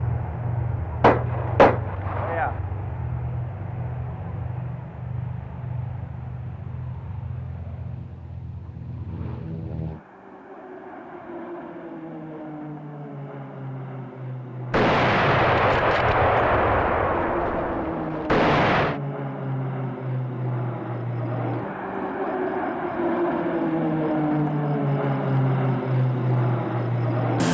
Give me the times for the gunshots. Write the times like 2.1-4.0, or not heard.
1.0-2.5, 14.7-19.0.